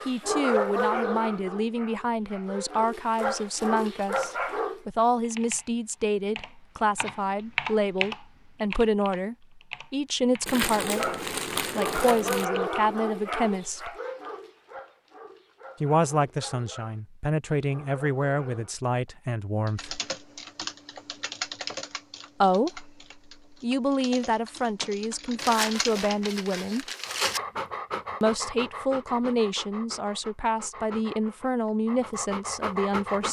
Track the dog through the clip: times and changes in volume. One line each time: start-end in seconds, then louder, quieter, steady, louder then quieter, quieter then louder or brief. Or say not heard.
0.0-4.8 quieter then louder
10.7-18.8 quieter
27.0-33.2 quieter then louder.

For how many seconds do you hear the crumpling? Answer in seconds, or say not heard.
4 s.